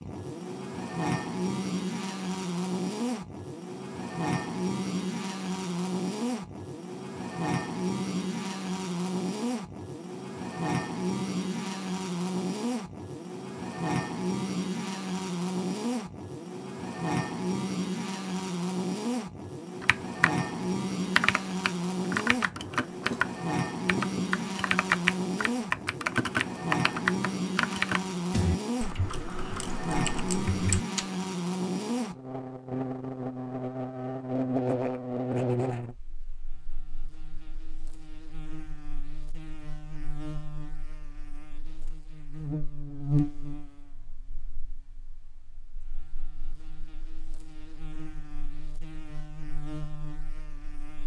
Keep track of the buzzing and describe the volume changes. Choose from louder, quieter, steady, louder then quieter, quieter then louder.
quieter.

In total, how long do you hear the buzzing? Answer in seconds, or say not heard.
51 s.